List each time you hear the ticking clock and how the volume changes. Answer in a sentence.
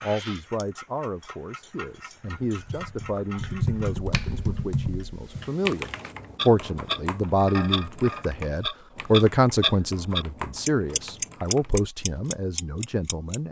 You can hear the ticking clock from 0.0 to 13.4 s, getting louder.